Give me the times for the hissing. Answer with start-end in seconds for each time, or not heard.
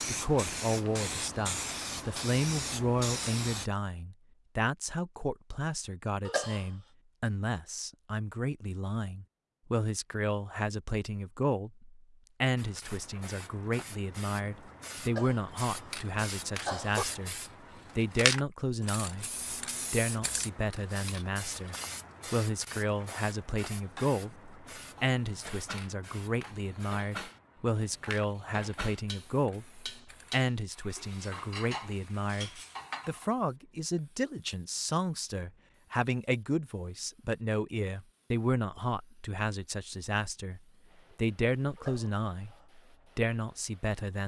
0.0-3.7, 12.6-44.0.